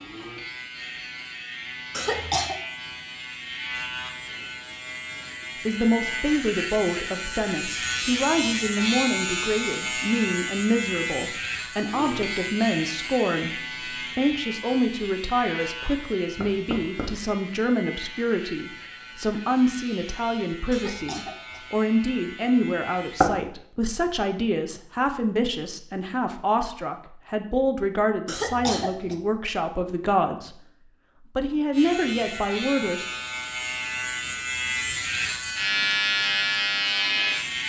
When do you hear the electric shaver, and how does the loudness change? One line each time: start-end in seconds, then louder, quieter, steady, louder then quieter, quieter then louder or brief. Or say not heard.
0.0-23.3 louder then quieter
31.7-37.6 louder.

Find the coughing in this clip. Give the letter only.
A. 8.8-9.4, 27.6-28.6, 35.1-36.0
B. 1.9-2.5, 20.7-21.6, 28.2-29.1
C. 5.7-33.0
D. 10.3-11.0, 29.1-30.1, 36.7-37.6
B.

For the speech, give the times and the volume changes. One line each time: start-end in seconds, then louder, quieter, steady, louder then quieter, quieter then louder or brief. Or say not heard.
5.7-33.0 steady.